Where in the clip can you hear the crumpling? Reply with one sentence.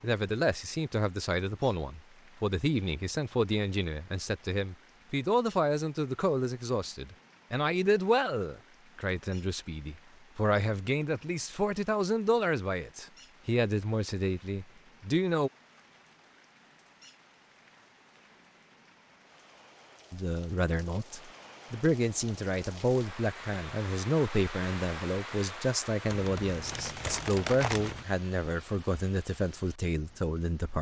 The crumpling can be heard from 26.1 to 28.1 s.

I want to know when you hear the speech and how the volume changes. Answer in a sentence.
The speech can be heard from 0.0 to 15.5 s, at a steady volume; and from 20.1 to 30.7 s, at a steady volume.